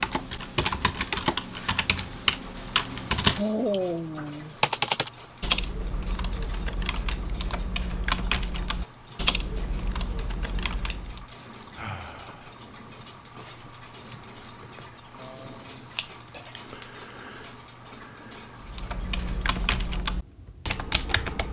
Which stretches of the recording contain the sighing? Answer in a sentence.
The sighing can be heard from 3.4 to 4.5 s, from 11.8 to 12.5 s and from 15.2 to 15.8 s.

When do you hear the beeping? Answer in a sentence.
You can't hear the beeping here.